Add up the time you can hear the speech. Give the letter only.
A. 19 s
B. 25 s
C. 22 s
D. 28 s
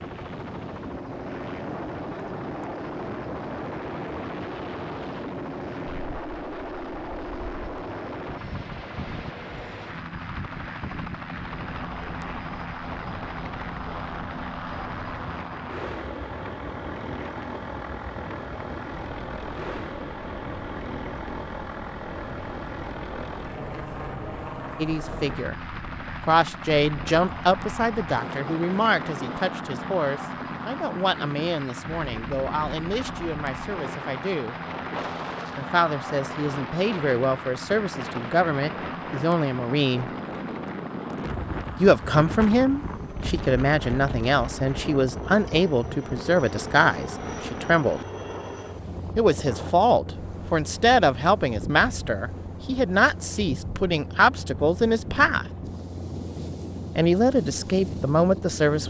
D.